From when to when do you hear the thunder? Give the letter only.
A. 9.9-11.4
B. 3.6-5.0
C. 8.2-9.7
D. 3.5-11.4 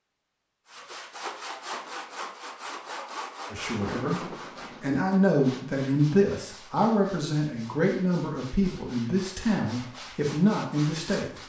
B.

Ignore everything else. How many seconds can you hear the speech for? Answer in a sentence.
You can hear the speech for 8 seconds altogether.